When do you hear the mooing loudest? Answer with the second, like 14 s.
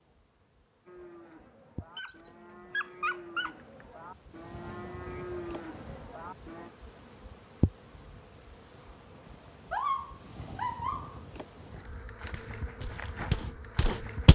5 s.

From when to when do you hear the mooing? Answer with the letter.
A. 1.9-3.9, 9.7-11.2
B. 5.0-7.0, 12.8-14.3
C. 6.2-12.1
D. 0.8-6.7
D.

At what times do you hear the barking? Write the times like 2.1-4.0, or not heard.
1.9-3.9, 9.7-11.2.